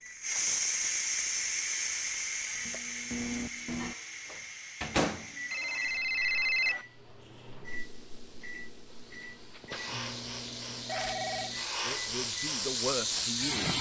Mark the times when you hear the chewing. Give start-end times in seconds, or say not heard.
not heard.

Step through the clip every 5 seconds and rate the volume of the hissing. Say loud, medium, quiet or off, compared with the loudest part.
loud, quiet, loud.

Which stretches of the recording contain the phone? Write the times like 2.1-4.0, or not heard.
0.6-2.9, 5.5-6.8, 10.8-11.5.